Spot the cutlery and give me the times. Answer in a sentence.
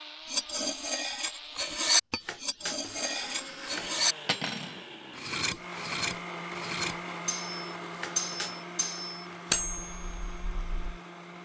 The cutlery can be heard from 0.2 to 10.9 s.